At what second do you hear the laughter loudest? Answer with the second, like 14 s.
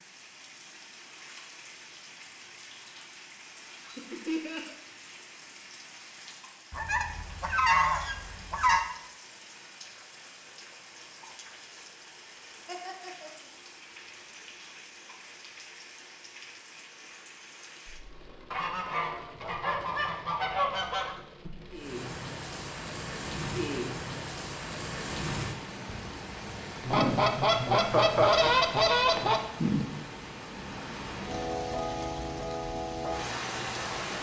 28 s.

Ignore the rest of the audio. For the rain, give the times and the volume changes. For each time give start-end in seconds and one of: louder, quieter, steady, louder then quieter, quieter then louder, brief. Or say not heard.
0.0-34.1 louder.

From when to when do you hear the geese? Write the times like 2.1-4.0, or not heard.
6.7-8.8, 18.5-21.1, 26.8-29.4.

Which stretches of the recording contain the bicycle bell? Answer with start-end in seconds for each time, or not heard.
not heard.